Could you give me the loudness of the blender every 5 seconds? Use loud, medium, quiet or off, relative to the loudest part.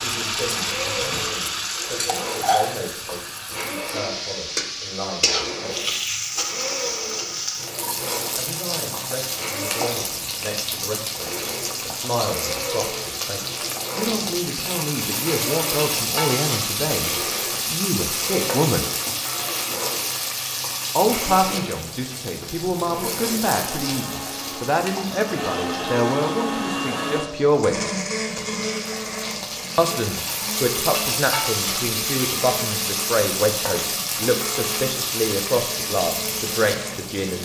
medium, medium, medium, medium, medium, loud, medium, medium.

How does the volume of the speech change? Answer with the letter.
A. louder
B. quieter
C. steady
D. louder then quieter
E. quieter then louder
A.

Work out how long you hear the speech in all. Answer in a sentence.
You can hear the speech for 31 seconds altogether.